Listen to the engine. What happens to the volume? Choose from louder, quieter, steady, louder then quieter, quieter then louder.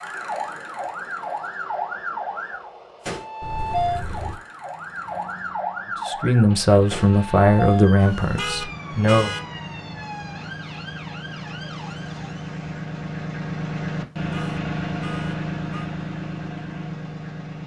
louder.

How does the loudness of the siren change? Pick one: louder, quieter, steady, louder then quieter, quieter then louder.
quieter.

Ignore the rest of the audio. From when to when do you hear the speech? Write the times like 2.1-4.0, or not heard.
6.0-9.3.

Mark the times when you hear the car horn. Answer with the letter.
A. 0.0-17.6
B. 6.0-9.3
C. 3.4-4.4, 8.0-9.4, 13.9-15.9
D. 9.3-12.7
C.